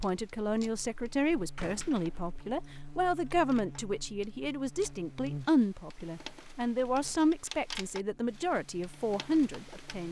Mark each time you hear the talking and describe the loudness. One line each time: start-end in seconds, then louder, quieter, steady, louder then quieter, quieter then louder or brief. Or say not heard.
0.0-10.0 steady.